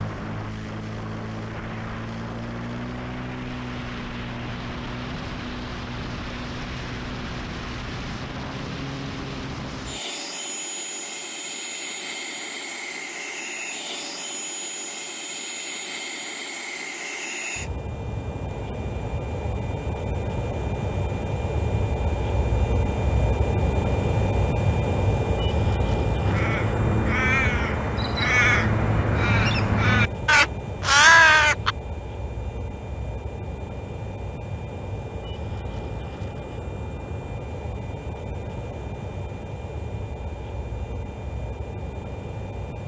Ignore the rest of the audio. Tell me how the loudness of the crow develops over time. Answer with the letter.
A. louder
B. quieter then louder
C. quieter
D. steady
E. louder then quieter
A.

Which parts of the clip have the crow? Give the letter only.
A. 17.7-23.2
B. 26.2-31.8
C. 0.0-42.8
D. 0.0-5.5
B.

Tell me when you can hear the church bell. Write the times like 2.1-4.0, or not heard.
not heard.